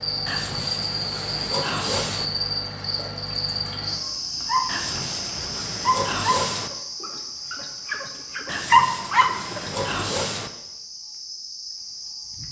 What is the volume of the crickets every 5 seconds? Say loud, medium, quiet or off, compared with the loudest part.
loud, medium, medium.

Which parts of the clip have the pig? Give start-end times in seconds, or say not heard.
0.2-2.2, 4.7-6.7, 8.4-10.5.